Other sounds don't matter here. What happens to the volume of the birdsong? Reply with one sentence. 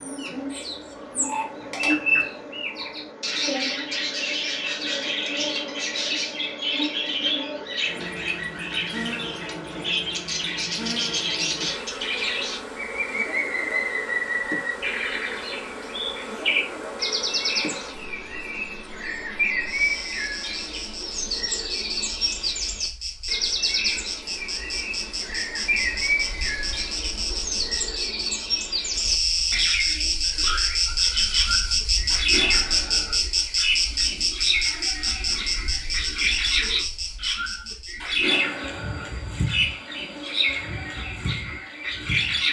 The loudness of the birdsong stays about the same.